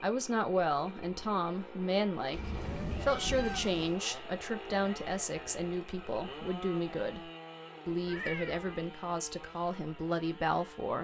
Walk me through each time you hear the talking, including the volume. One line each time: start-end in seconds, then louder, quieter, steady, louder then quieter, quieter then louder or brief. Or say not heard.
0.0-11.0 steady.